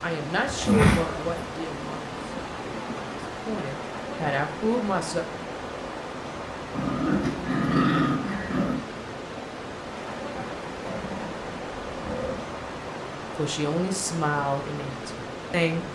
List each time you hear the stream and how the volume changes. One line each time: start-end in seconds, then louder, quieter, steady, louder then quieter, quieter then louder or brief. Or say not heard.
0.0-15.9 steady.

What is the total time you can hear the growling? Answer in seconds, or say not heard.
5 s.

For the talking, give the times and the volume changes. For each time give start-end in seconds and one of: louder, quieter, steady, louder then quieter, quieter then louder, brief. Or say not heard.
0.0-5.2 quieter then louder
13.3-15.9 brief.